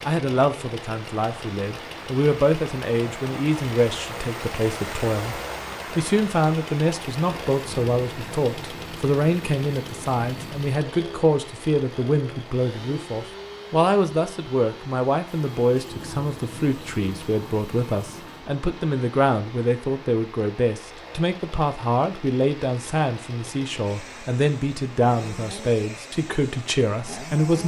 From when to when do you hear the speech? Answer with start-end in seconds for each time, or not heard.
0.0-27.6.